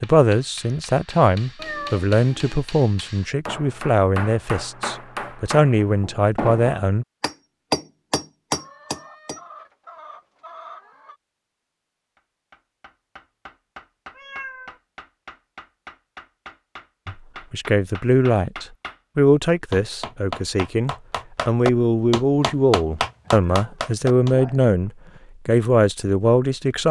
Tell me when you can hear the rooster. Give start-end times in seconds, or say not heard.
8.6-11.2.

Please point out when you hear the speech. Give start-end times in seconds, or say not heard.
0.0-7.0, 17.1-26.8.